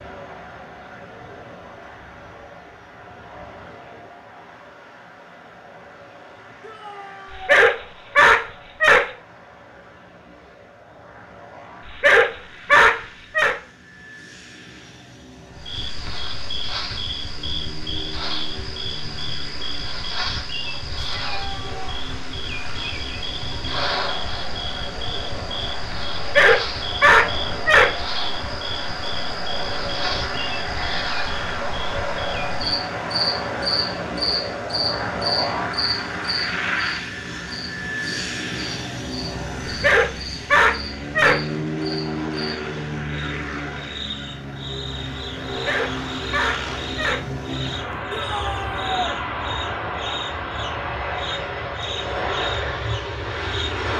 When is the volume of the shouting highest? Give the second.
49 s.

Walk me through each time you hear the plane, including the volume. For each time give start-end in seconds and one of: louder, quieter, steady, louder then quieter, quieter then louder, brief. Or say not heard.
0.0-53.9 louder.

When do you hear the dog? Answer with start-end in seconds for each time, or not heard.
7.3-9.1, 11.8-13.6, 26.1-27.9, 39.6-41.4, 45.5-47.2.